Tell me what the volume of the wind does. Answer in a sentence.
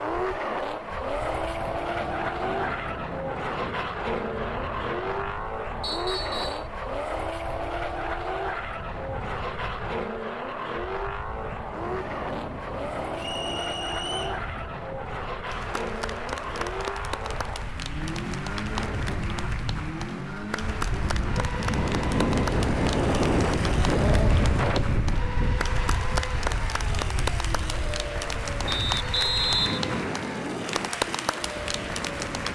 The volume of the wind goes up, then down.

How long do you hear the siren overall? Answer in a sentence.
The siren can't be heard in this clip.